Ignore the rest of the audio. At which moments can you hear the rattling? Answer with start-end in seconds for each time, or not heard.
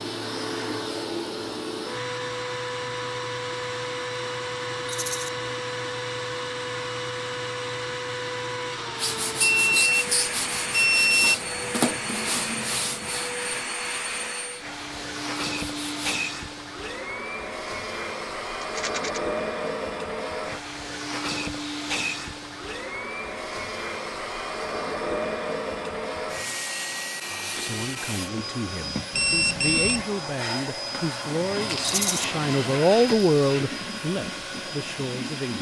4.8-5.3, 18.6-19.2, 31.8-32.2.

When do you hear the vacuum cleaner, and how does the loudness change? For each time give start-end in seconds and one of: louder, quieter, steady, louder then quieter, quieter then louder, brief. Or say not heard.
0.0-35.5 steady.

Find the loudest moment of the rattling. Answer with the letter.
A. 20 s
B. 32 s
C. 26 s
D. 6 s
B.